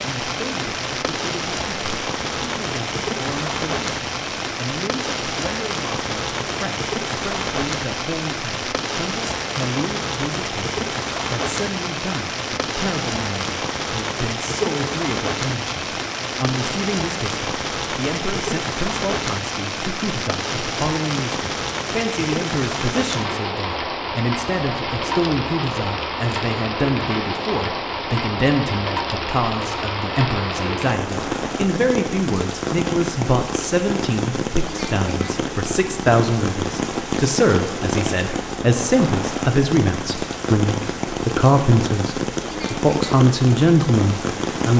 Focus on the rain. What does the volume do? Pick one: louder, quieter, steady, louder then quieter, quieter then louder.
steady.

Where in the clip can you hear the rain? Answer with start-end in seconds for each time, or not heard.
0.0-44.7.